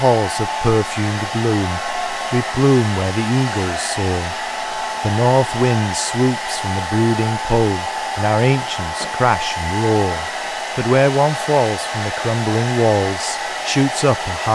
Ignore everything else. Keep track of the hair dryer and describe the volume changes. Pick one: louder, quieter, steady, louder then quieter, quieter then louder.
steady.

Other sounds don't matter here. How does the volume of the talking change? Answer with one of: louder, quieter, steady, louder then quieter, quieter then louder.
steady.